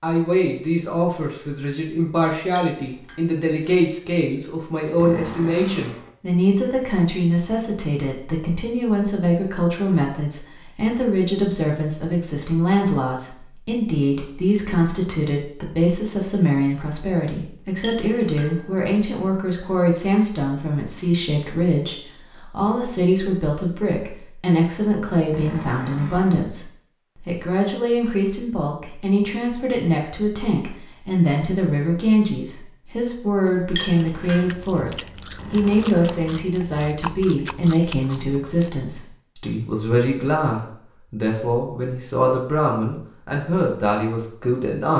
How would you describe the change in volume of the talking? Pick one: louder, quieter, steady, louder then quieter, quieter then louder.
steady.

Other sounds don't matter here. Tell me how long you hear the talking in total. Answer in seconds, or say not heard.
45 s.